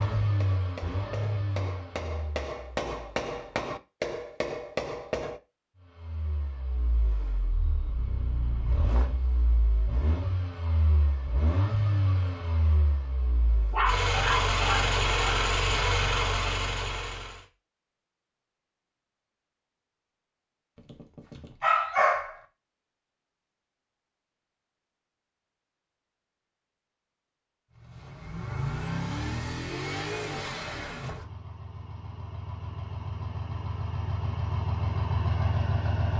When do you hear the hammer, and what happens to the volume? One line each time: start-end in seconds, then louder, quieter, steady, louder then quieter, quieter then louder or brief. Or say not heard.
0.0-5.4 louder.